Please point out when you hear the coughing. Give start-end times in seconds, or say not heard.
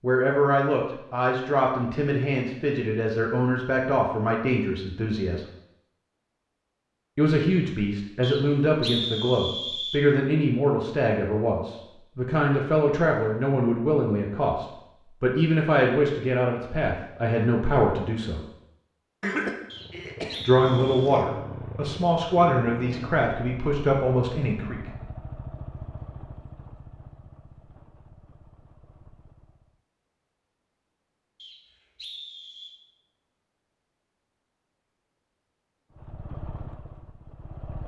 19.2-21.2.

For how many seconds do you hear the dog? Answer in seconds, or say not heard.
not heard.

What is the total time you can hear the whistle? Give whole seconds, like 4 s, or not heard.
5 s.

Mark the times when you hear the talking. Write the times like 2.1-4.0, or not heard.
0.0-5.5, 7.2-18.4, 20.4-24.8.